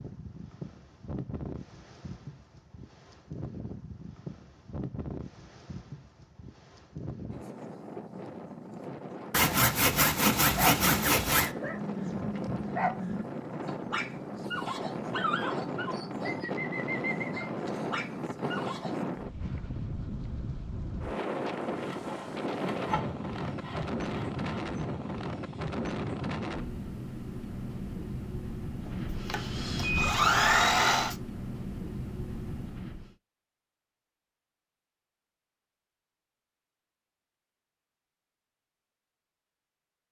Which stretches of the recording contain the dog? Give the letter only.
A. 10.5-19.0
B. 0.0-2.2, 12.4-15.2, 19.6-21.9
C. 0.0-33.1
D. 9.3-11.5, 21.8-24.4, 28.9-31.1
A.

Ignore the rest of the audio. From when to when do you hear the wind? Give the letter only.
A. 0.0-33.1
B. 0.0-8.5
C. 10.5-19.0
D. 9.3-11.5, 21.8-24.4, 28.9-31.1
A.